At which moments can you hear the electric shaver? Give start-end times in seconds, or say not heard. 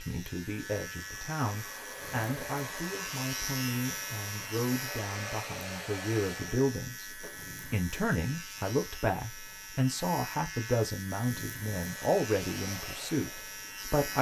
0.0-14.1.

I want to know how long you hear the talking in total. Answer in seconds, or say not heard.
14 s.